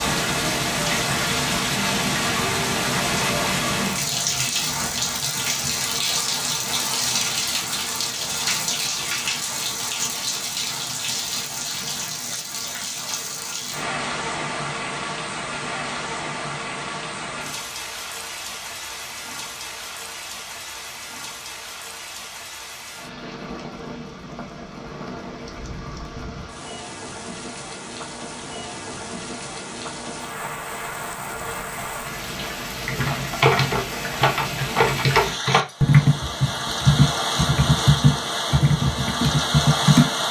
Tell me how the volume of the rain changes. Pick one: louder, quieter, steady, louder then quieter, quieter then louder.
quieter then louder.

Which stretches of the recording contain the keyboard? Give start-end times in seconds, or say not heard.
32.9-40.2.